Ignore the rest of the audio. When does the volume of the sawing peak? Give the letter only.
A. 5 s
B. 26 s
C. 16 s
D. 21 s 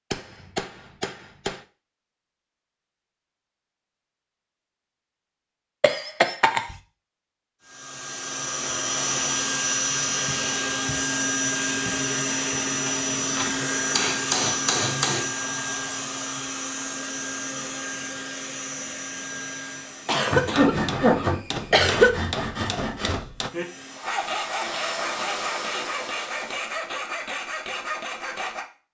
D.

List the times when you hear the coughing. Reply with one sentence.
The coughing can be heard from 5.8 to 6.8 s and from 20.1 to 22.1 s.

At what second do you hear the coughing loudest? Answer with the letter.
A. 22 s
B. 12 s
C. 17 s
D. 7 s
A.